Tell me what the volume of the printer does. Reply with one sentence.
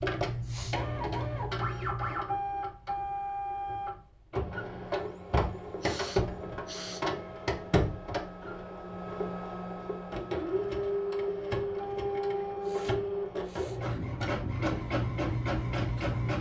The loudness of the printer stays about the same.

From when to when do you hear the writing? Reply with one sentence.
The writing can be heard from 0.0 to 2.2 s and from 13.6 to 16.3 s.